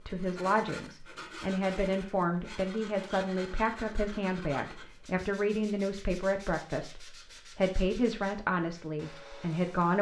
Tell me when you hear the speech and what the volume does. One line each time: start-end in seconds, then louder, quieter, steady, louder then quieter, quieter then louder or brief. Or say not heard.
0.1-9.9 steady.